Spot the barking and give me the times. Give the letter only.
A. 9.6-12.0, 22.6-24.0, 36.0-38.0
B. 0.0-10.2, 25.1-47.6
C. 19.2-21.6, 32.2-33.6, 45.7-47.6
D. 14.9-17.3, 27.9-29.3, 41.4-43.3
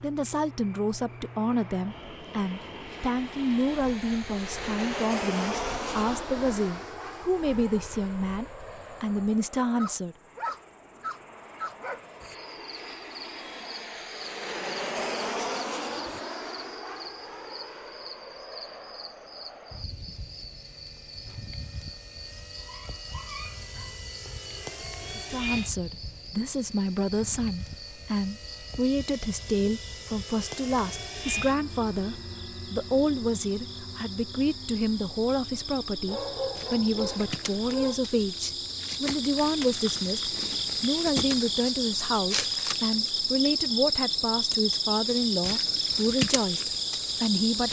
A.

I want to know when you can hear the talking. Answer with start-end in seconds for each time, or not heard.
0.0-10.2, 25.1-47.6.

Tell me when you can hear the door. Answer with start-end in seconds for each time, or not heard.
not heard.